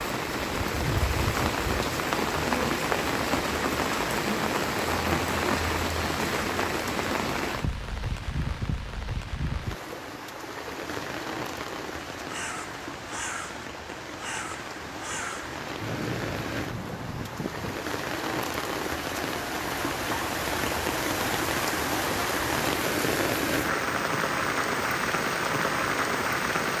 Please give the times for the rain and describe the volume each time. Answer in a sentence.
You can hear the rain from 0.0 to 26.7 s, getting quieter then louder.